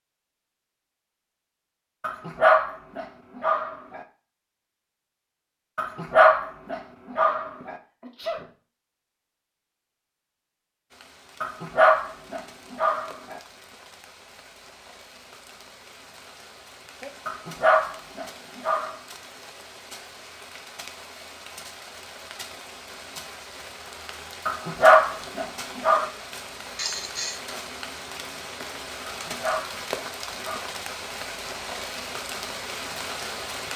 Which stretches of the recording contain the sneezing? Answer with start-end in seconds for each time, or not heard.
7.6-8.5, 26.8-27.4.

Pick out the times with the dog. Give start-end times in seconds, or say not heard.
2.0-4.0, 5.8-7.8, 11.4-13.4, 17.2-18.9, 24.4-26.1, 29.1-30.6.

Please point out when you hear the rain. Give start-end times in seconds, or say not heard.
10.9-33.7.